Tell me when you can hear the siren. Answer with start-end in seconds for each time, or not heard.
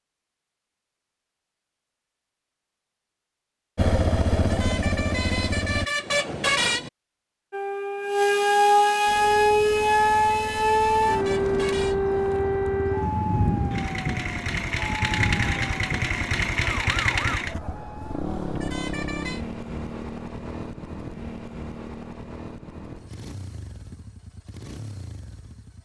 7.5-17.4.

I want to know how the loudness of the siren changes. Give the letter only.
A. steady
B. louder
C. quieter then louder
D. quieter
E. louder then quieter
D.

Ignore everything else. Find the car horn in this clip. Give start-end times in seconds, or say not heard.
4.3-6.9, 9.5-11.9, 18.4-19.4.